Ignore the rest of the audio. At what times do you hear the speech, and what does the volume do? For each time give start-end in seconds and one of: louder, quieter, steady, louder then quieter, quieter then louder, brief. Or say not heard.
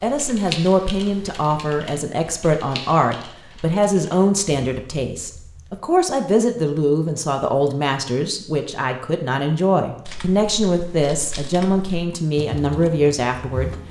0.0-13.7 steady.